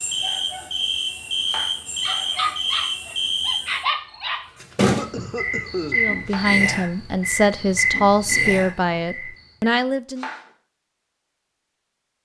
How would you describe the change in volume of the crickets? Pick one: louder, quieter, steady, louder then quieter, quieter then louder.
steady.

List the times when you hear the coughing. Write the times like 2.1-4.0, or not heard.
4.8-6.0.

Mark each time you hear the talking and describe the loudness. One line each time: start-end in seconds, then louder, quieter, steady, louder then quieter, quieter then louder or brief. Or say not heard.
6.0-10.2 steady.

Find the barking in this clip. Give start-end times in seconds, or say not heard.
2.0-4.5.